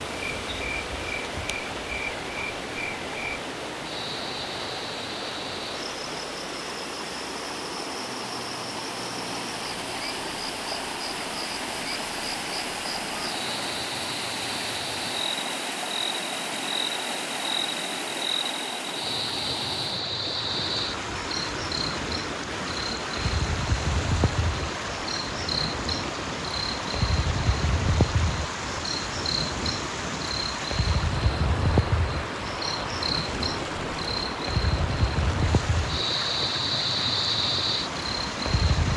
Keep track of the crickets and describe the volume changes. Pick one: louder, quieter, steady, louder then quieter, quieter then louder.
louder.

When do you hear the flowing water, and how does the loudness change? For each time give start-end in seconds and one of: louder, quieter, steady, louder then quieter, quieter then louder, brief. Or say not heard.
0.0-38.9 steady.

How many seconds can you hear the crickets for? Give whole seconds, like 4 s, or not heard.
39 s.